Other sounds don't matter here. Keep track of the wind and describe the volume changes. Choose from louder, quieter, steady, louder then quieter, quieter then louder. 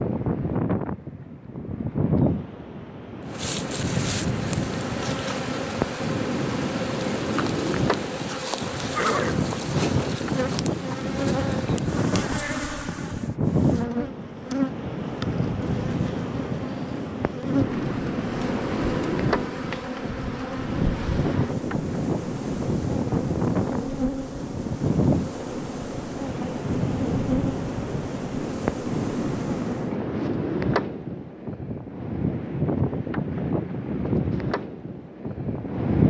steady.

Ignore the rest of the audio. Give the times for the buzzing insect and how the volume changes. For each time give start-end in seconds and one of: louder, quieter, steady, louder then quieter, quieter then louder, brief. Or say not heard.
3.2-29.9 steady.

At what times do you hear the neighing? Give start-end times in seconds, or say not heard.
8.9-9.9.